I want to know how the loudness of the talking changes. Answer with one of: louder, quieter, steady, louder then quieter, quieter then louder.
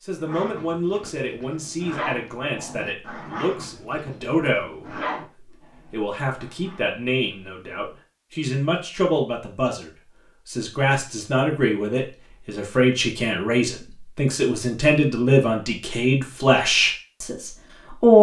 louder.